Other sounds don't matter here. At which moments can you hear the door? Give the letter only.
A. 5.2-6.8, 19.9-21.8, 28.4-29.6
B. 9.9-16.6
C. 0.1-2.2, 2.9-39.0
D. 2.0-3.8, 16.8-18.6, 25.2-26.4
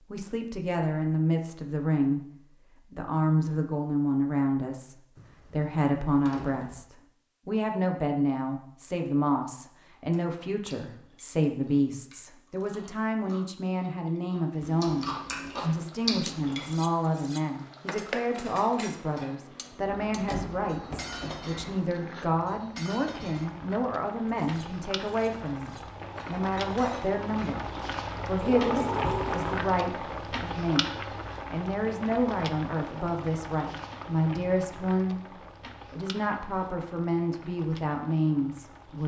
A.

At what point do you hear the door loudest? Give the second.
29 s.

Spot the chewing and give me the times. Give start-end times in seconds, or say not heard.
9.9-16.6.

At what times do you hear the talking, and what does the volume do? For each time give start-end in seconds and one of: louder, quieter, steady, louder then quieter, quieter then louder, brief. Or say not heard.
0.1-2.2 brief
2.9-39.0 steady.